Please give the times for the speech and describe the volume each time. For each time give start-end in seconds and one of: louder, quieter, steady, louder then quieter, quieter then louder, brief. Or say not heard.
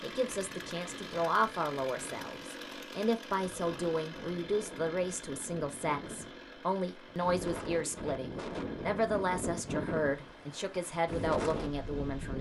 0.0-12.3 steady.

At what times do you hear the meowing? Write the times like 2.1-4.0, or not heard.
not heard.